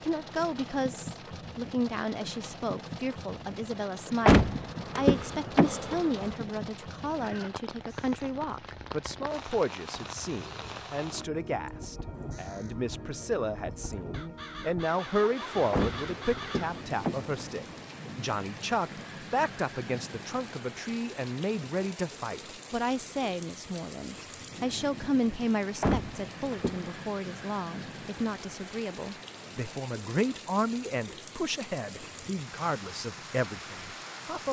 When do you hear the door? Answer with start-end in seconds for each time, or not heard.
4.2-6.3, 15.7-17.9, 25.8-26.9.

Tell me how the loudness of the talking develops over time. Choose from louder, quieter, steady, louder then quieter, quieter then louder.
steady.